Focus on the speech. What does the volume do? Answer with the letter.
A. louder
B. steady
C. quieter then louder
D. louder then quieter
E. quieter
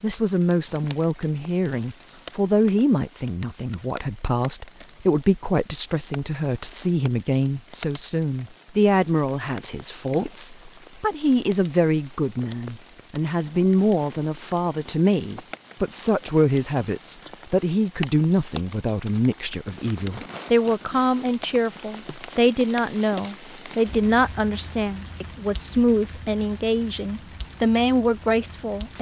B.